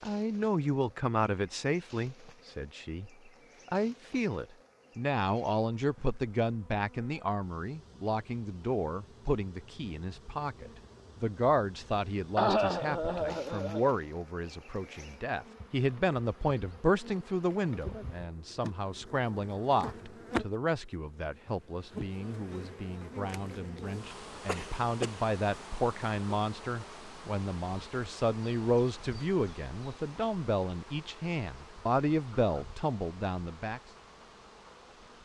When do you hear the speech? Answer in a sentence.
You can hear the speech from 0.0 to 33.8 s.